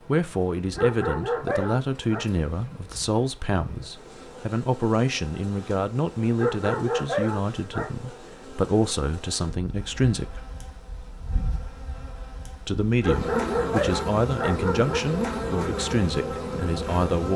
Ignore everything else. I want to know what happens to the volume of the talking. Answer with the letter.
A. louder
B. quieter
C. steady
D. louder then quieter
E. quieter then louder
C.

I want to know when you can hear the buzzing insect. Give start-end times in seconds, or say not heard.
0.0-17.3.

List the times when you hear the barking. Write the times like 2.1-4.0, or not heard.
0.8-2.2, 6.3-7.9, 13.0-15.0.